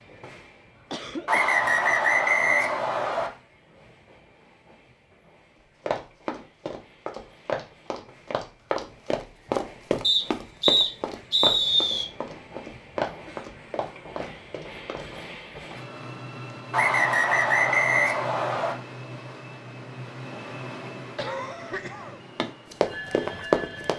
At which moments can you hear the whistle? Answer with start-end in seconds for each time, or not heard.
1.2-3.3, 10.0-12.1, 16.7-18.8.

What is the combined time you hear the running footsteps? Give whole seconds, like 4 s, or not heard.
11 s.